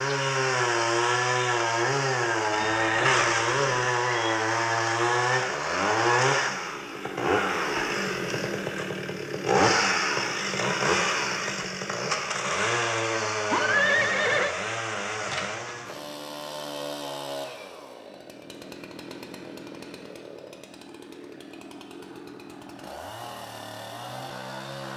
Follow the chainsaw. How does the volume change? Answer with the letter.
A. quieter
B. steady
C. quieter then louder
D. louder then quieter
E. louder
A.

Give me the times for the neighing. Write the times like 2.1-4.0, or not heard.
2.5-3.9, 13.4-14.6.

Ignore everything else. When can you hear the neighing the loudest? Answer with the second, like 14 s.
14 s.